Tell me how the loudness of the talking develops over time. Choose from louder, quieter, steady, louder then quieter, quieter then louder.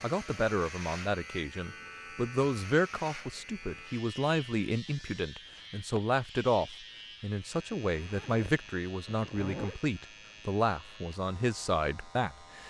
steady.